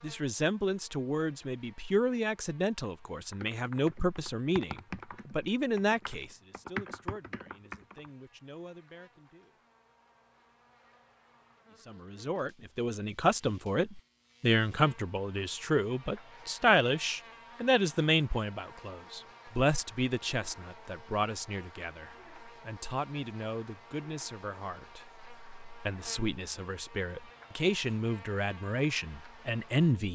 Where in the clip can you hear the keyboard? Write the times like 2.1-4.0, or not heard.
3.3-8.1.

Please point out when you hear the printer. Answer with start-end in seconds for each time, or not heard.
not heard.